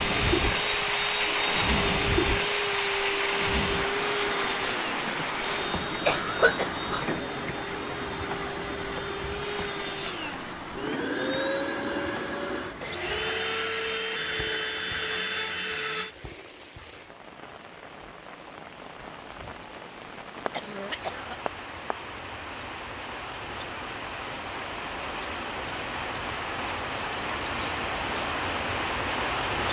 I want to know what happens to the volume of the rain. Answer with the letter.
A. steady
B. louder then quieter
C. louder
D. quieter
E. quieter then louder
E.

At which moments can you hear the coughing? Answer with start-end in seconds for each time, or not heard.
6.0-7.2, 20.4-21.9.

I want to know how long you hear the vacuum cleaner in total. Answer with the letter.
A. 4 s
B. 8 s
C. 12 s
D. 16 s
D.